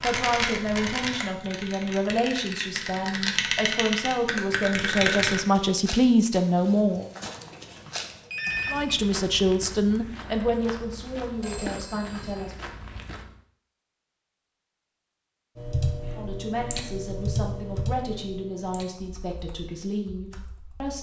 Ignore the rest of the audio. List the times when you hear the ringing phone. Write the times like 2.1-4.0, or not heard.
7.2-8.9, 11.4-12.4.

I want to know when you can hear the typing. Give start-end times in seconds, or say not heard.
0.0-5.4, 15.6-20.9.